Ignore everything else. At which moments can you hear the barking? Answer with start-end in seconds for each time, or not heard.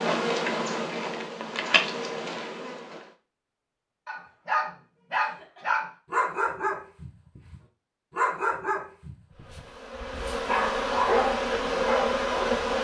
4.0-9.6, 10.4-12.6.